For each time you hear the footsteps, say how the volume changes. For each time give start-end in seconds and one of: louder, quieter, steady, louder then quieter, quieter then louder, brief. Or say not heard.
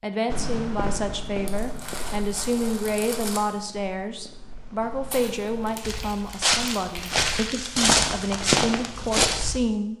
0.3-9.6 quieter then louder.